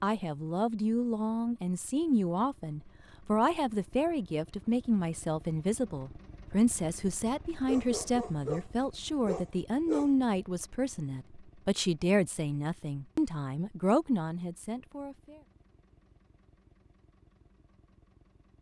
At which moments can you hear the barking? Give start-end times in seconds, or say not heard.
7.7-10.1.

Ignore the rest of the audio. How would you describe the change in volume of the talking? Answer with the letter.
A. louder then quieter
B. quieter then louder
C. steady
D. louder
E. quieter
C.